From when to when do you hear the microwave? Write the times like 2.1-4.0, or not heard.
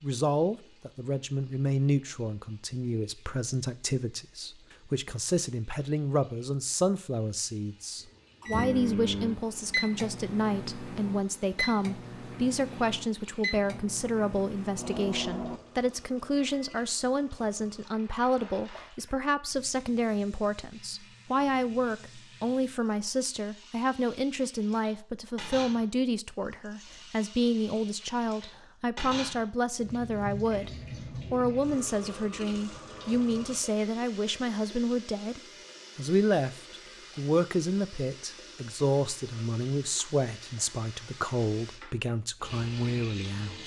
8.4-16.9.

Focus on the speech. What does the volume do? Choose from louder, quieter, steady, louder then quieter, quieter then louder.
steady.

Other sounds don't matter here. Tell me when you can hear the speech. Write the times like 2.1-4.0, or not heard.
0.0-30.7, 31.3-43.6.